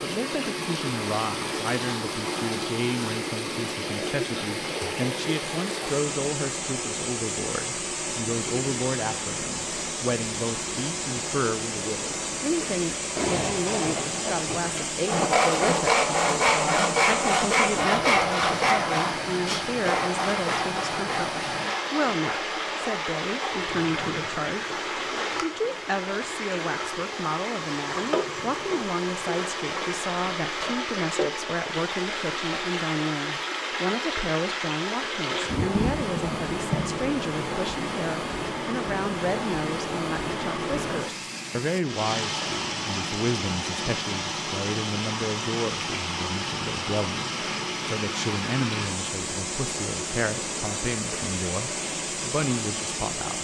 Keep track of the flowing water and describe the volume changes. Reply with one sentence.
The volume of the flowing water stays about the same.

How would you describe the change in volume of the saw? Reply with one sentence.
The volume of the saw goes down.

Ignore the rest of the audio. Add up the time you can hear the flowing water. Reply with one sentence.
The flowing water can be heard for 53 seconds in total.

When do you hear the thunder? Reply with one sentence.
You can hear the thunder from 13.2 to 14.8 s and from 35.5 to 37.0 s.